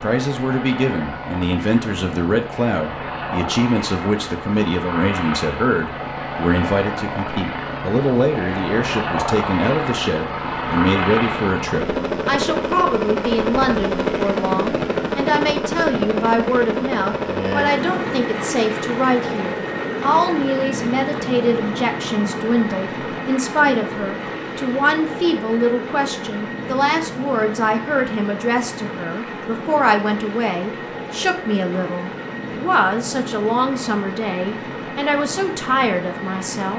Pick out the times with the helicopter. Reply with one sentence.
The helicopter can be heard from 0.0 to 36.7 s.